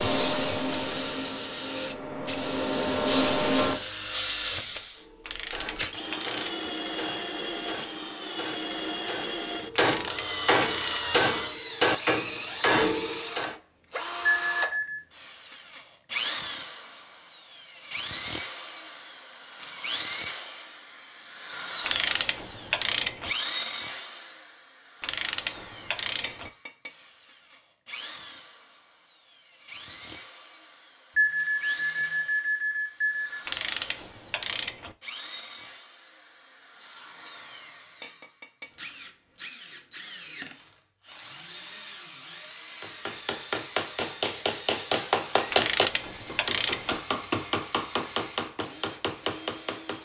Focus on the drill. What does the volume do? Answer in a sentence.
The loudness of the drill goes down.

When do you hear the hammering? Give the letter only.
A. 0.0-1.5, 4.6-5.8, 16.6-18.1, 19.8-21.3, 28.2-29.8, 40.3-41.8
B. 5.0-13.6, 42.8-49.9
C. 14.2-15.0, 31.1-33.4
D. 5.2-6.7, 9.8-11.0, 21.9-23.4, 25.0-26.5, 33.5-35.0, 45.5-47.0
B.